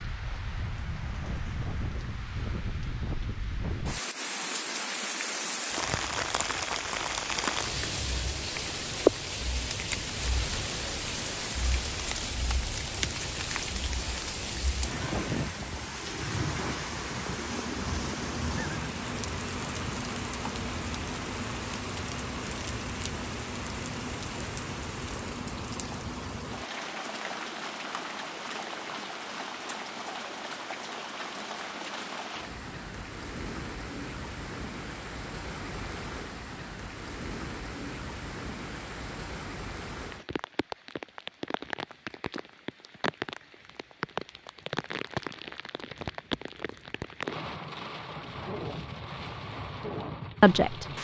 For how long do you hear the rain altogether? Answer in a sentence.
You can hear the rain for 51 seconds altogether.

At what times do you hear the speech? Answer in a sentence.
You can hear the speech from 50.4 to 50.9 s.